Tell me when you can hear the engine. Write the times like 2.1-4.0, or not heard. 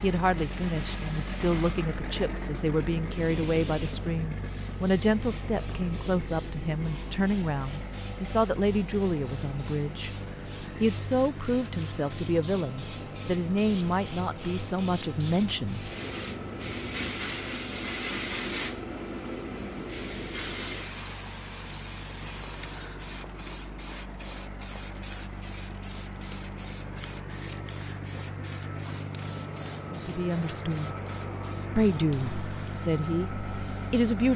0.0-34.3.